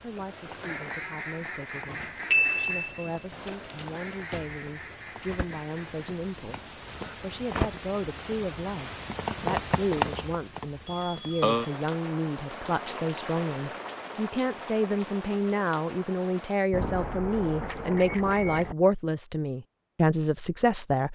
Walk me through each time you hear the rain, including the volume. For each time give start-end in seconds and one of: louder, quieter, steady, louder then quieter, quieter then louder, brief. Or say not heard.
0.0-16.6 louder then quieter.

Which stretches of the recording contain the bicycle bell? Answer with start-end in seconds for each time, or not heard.
2.3-3.9, 10.8-11.6, 16.7-18.8.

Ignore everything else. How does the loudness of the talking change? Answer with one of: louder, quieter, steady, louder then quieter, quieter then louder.
louder.